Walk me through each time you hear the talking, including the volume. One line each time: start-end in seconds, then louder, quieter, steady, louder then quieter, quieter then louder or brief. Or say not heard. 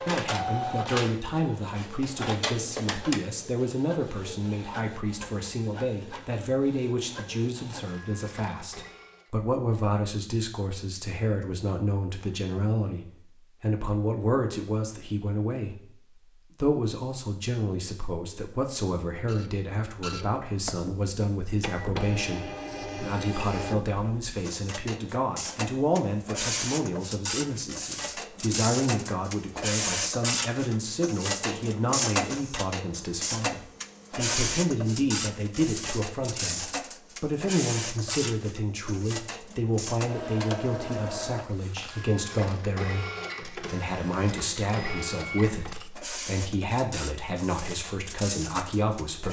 0.0-49.2 steady.